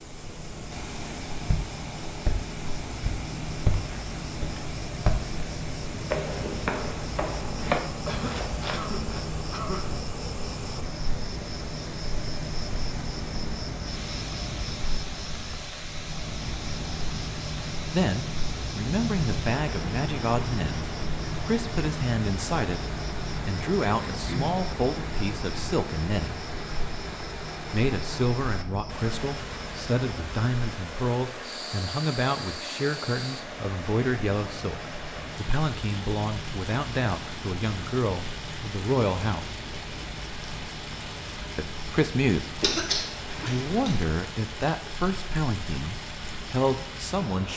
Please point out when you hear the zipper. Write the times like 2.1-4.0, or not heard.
not heard.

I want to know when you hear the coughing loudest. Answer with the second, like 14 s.
43 s.